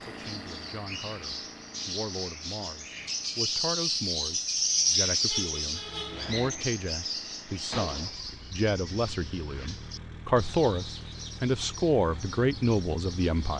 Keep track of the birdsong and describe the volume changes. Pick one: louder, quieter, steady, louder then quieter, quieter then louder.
louder then quieter.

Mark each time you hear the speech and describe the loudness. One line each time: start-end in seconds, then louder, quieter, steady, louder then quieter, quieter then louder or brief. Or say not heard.
0.0-13.5 louder.